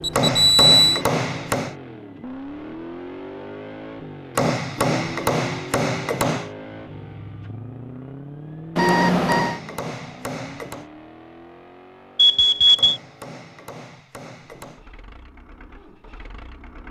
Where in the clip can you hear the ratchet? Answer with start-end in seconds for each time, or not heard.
not heard.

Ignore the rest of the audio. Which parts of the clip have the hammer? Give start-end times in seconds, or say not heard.
0.1-1.8, 4.3-6.5, 8.8-10.8, 12.8-14.8.